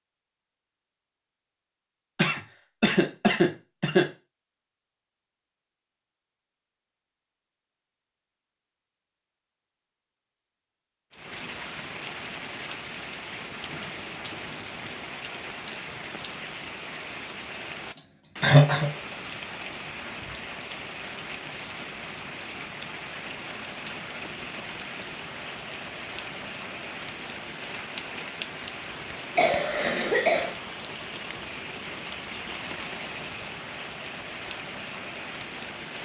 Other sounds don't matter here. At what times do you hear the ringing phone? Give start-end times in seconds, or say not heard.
not heard.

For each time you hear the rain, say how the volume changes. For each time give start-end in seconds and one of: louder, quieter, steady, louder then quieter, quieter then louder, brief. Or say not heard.
11.1-35.9 steady.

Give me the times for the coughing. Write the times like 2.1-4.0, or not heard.
2.1-4.0, 17.9-18.9, 29.4-30.6.